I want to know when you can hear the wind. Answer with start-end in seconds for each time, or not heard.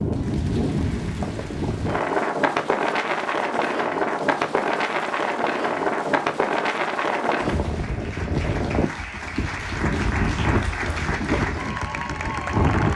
0.0-12.9.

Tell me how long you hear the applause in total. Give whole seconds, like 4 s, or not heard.
13 s.